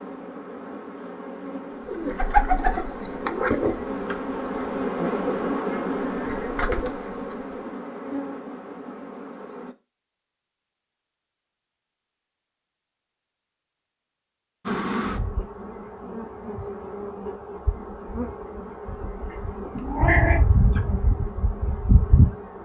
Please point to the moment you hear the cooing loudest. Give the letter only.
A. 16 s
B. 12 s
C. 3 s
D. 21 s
C.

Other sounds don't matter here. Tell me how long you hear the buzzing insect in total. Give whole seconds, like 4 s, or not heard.
18 s.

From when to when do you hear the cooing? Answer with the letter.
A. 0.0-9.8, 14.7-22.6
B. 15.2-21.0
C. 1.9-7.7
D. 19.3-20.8
C.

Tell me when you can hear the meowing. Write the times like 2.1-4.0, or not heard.
19.3-20.8.